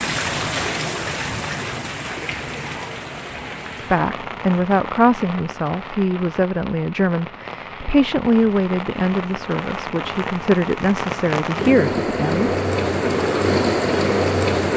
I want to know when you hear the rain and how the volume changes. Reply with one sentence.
You can hear the rain from 0.0 to 14.7 s, getting quieter then louder.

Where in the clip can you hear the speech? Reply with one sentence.
The speech can be heard from 3.8 to 12.6 s.